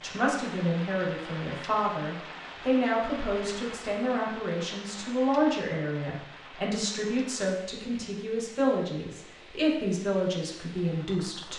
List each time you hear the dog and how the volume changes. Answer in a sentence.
You can't hear the dog here.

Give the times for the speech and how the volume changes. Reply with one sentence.
The speech can be heard from 0.0 to 11.5 s, at a steady volume.